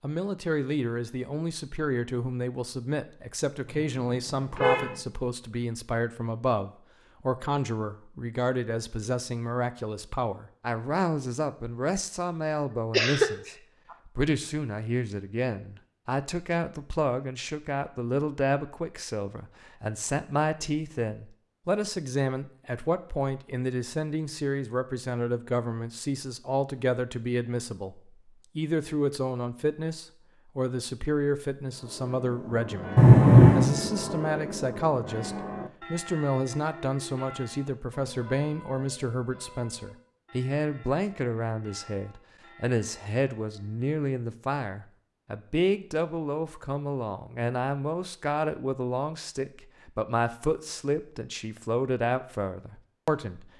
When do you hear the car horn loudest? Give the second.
33 s.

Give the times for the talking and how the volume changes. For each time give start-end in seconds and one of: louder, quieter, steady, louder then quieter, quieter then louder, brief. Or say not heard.
0.0-53.5 steady.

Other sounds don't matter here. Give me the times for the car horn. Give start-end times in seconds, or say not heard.
3.6-5.0, 33.0-33.7.